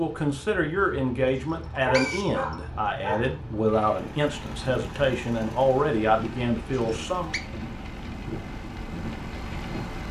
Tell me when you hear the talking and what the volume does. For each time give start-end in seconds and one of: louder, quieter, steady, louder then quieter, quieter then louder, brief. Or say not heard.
0.0-7.3 steady.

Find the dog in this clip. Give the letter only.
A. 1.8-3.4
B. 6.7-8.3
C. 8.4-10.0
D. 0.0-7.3
A.